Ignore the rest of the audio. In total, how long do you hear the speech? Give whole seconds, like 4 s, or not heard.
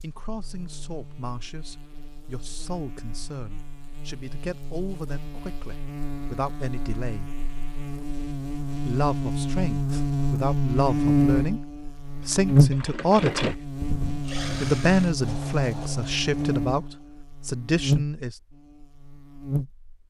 16 s.